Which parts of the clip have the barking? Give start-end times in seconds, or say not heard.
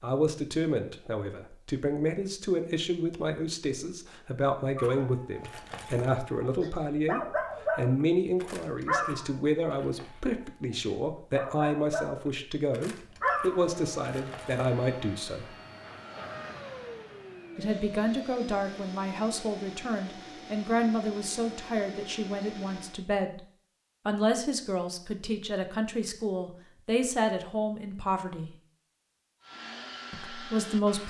4.8-14.8.